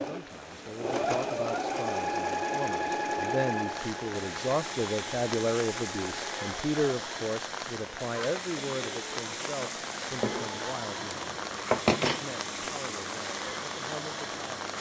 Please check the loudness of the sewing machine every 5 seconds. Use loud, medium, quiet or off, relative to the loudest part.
loud, medium, medium.